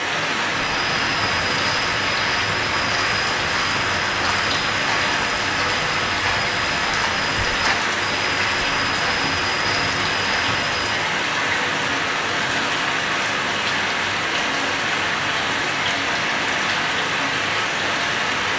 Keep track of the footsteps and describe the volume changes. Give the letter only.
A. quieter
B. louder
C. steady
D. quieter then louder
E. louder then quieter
C.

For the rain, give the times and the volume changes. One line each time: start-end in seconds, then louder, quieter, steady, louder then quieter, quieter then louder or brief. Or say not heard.
0.0-18.5 steady.